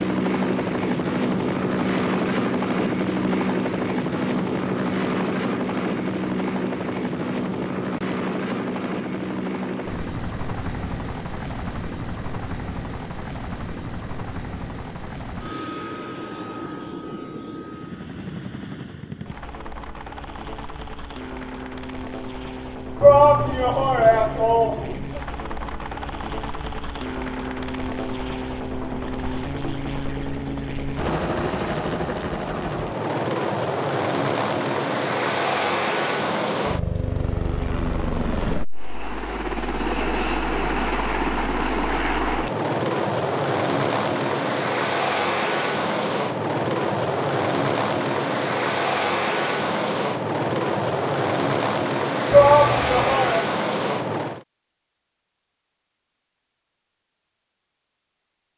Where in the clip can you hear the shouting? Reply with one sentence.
You can hear the shouting from 23.0 to 25.2 s and from 52.3 to 53.5 s.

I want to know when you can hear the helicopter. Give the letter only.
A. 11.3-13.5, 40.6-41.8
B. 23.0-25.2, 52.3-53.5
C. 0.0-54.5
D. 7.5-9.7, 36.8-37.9
C.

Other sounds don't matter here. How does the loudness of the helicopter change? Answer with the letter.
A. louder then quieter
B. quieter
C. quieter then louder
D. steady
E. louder
C.